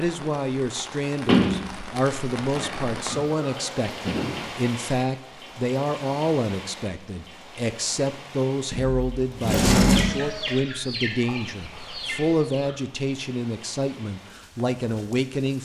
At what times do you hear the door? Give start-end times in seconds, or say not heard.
1.2-3.0, 8.7-10.1.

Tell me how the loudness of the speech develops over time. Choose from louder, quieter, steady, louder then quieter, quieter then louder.
steady.